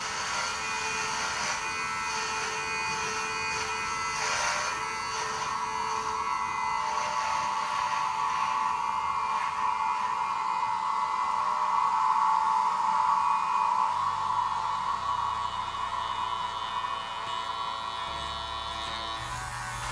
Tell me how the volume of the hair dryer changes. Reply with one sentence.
The volume of the hair dryer goes up, then down.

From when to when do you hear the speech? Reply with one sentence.
You can't hear the speech here.